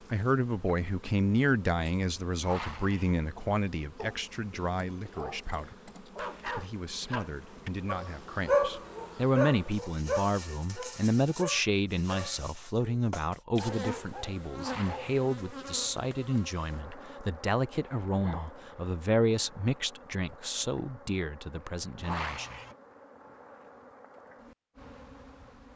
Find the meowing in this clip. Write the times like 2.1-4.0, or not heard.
2.4-3.1, 14.6-15.2, 22.0-22.8.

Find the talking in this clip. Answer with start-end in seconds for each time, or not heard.
0.1-22.6.